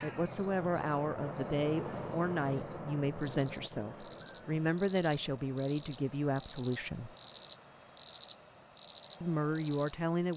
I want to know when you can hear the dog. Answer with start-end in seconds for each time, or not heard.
not heard.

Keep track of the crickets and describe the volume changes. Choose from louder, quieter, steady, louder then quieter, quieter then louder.
louder.